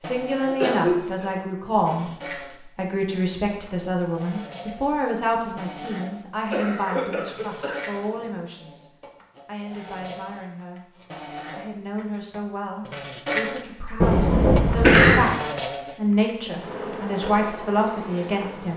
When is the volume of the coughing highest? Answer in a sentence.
The volume of the coughing peaks at 15 seconds.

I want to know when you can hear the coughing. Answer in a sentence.
The coughing can be heard from 0.5 to 1.2 s, from 6.5 to 8.3 s and from 14.0 to 15.3 s.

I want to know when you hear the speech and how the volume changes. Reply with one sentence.
The speech can be heard from 0.0 to 10.8 s, getting quieter; and from 11.6 to 18.7 s, getting louder.